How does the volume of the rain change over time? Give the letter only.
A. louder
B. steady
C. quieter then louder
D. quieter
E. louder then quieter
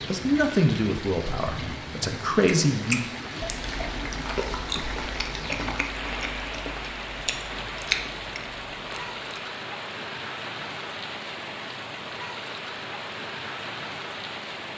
B.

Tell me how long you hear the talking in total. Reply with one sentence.
You can hear the talking for 3 seconds altogether.